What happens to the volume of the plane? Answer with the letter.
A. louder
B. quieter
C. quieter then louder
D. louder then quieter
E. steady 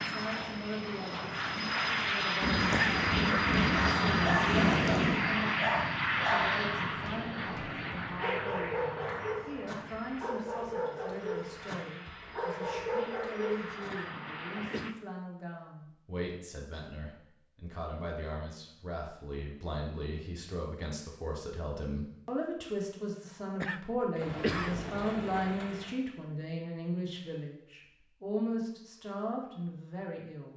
B.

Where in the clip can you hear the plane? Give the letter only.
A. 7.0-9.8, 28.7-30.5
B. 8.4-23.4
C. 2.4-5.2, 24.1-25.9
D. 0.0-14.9
D.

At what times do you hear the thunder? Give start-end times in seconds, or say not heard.
2.4-5.2, 24.1-25.9.